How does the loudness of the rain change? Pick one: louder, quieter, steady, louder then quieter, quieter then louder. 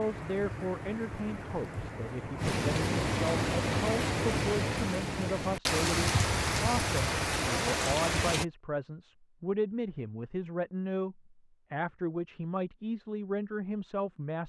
louder.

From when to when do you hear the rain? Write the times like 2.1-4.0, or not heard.
0.0-8.4.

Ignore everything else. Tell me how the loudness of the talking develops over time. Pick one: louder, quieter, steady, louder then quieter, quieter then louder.
steady.